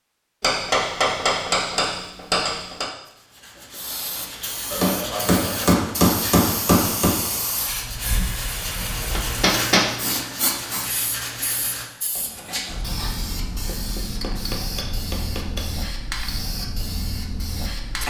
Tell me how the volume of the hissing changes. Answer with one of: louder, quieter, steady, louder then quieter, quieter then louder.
steady.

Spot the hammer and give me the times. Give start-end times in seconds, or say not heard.
0.4-2.9, 4.7-7.2, 9.1-9.9, 13.7-15.7.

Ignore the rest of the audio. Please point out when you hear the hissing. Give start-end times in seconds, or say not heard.
3.7-18.0.